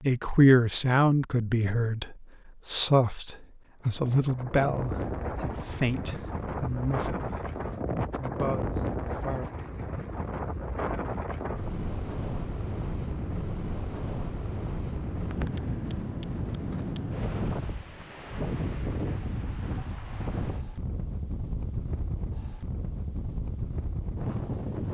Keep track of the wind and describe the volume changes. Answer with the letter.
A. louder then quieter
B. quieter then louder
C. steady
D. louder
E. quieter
C.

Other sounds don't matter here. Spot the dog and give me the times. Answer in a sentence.
You can't hear the dog here.